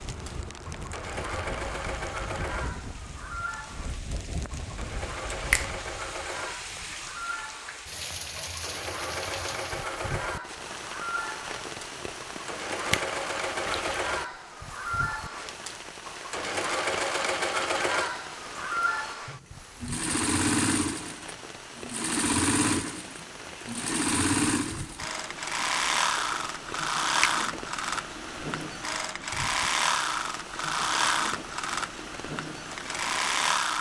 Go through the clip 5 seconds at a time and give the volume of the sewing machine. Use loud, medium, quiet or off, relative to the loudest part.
medium, medium, medium, loud, loud, loud, loud.